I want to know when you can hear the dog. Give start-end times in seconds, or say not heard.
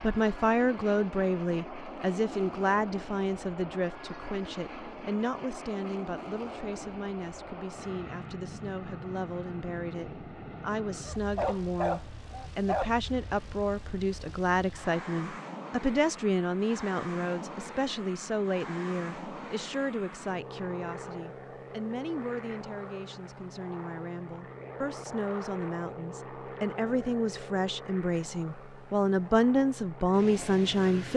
11.1-12.9.